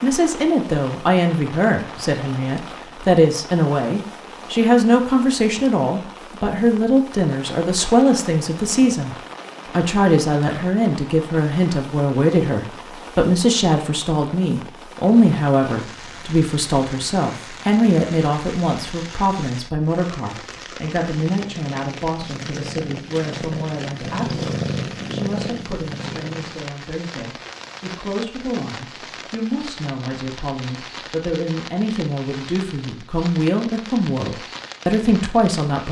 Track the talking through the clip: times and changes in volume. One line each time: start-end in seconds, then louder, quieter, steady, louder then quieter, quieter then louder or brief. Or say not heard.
0.0-9.2 steady
9.8-35.8 quieter then louder.